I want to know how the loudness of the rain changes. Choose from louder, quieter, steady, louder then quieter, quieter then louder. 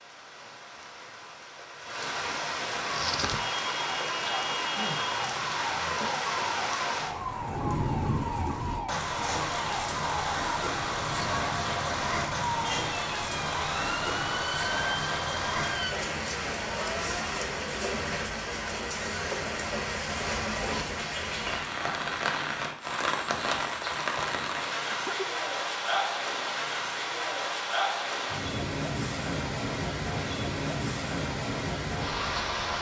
steady.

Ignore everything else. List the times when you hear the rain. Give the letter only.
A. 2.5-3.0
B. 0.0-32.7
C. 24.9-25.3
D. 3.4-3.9
B.